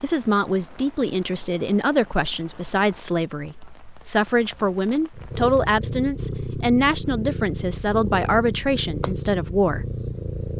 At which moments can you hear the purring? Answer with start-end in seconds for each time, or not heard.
5.1-10.5.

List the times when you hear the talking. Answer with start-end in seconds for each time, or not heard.
0.0-9.8.